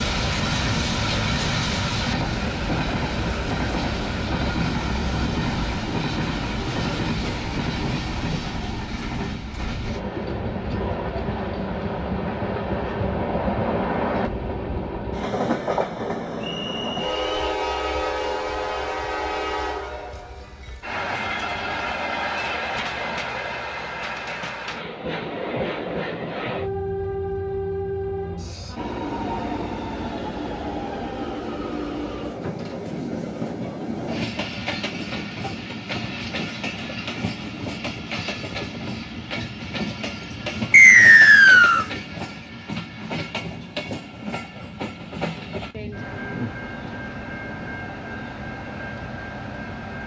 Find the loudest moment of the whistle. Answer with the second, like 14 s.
41 s.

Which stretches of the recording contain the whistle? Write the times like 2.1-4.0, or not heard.
16.4-17.6, 40.7-41.9.